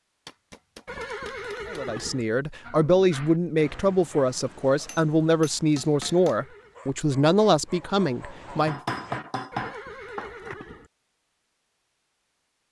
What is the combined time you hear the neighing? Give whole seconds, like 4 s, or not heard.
4 s.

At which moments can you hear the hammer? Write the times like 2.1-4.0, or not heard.
0.2-2.1, 4.8-6.4, 8.7-10.6.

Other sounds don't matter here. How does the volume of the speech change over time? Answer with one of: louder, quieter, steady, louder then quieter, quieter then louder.
steady.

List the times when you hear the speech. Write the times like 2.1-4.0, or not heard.
1.7-8.8.